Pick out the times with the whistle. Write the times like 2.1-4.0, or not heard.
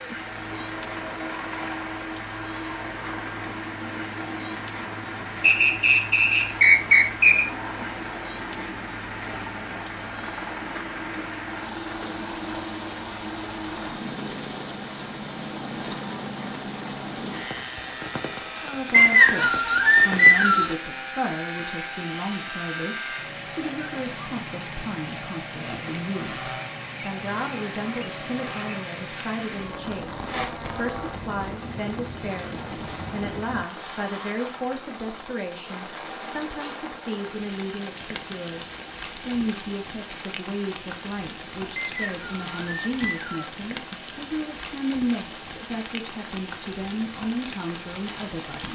5.4-7.5, 18.9-20.8, 41.8-43.5.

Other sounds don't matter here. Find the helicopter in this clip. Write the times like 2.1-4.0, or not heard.
0.0-33.6.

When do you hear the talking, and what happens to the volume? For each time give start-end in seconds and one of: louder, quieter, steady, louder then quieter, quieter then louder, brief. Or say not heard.
18.6-48.7 steady.